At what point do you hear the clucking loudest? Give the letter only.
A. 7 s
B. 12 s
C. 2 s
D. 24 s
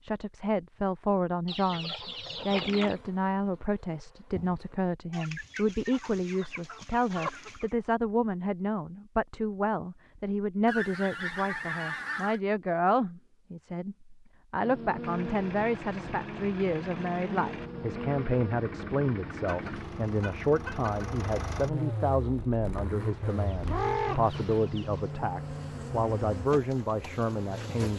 D.